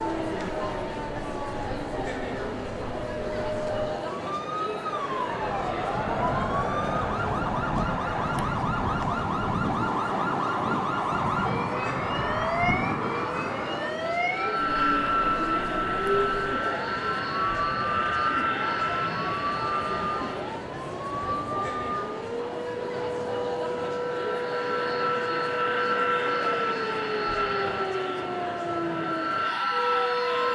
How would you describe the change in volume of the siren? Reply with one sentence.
The volume of the siren stays about the same.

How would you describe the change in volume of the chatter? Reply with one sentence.
The volume of the chatter stays about the same.